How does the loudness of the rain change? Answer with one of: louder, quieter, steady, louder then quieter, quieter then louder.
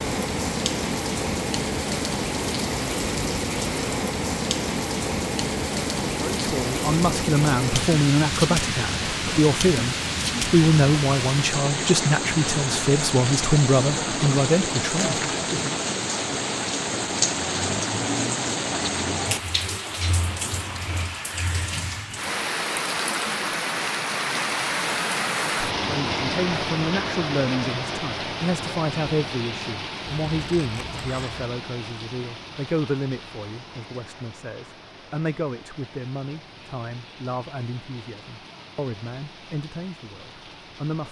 quieter.